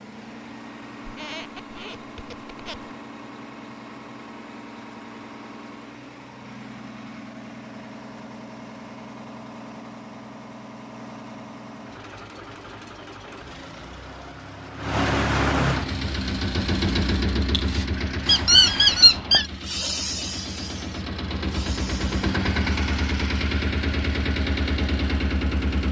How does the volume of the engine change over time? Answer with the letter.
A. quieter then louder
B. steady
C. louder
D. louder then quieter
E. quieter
C.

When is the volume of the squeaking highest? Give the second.
19 s.